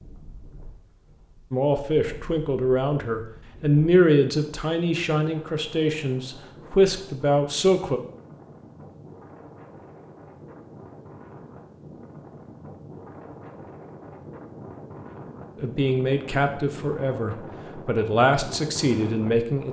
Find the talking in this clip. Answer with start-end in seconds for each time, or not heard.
1.5-8.0, 15.6-19.6.